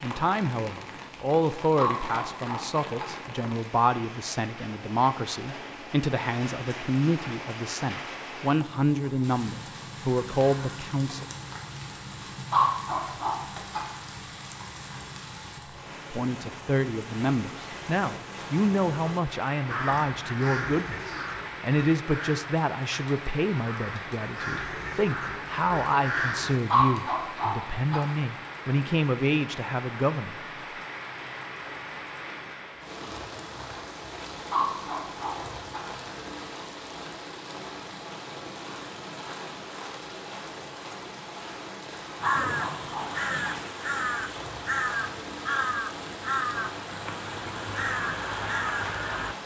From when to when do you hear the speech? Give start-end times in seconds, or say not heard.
0.0-11.2, 16.1-30.4.